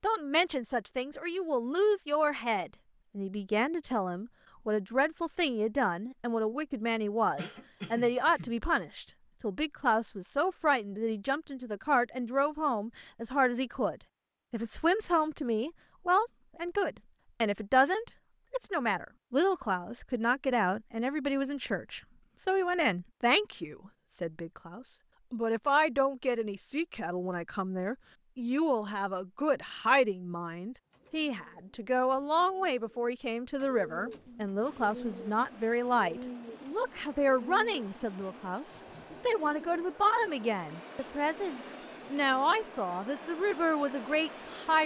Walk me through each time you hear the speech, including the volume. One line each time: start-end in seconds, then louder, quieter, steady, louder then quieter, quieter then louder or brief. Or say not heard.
0.0-44.8 steady.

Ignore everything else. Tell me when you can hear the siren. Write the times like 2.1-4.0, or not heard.
not heard.